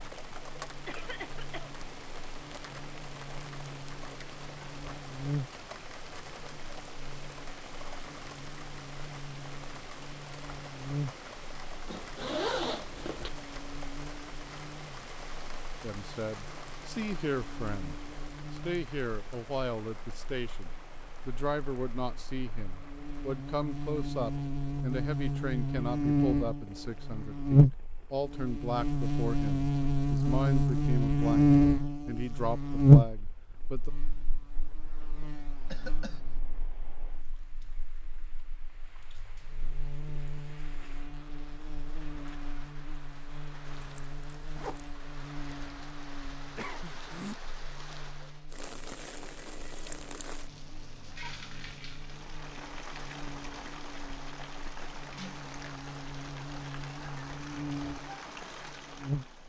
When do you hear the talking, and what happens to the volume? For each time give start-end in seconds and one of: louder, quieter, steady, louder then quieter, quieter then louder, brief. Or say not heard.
15.8-33.9 steady.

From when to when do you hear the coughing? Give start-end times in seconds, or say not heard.
0.7-1.8, 35.6-36.3, 46.4-47.4.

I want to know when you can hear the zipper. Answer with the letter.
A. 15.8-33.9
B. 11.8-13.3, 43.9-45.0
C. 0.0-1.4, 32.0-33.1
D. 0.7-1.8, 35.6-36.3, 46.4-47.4
B.